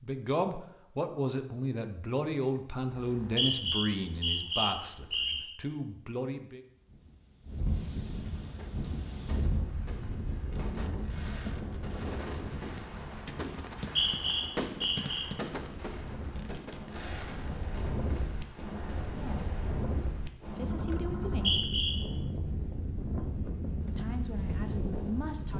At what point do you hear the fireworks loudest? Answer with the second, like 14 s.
15 s.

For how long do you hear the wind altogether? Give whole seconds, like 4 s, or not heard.
19 s.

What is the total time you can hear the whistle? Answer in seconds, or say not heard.
5 s.